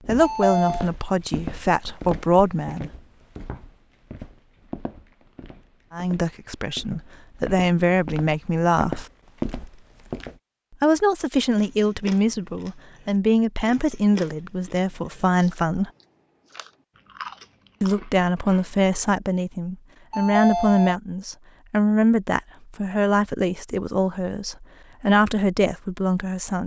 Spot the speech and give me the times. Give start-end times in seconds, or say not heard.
0.1-2.9, 5.9-9.1, 10.8-15.9, 17.8-26.6.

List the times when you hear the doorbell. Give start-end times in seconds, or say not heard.
0.2-0.9, 20.1-21.0.